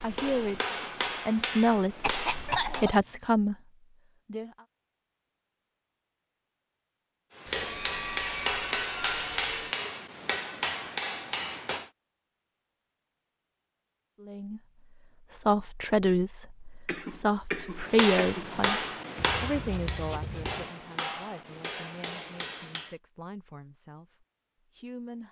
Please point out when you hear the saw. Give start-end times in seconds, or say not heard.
7.5-9.8, 19.1-20.7.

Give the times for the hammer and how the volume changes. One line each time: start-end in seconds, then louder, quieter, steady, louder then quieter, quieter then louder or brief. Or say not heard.
0.0-2.9 brief
7.3-11.9 steady
17.7-22.9 quieter.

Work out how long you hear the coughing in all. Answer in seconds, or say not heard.
3 s.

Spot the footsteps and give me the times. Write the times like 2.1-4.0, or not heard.
not heard.